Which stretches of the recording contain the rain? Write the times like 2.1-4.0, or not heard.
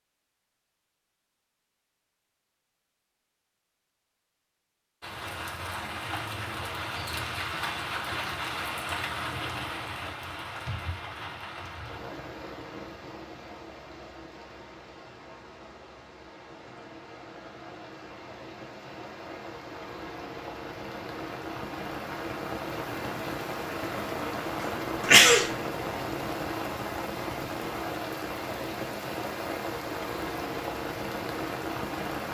5.0-32.2.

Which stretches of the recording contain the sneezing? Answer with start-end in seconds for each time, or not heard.
24.6-25.5.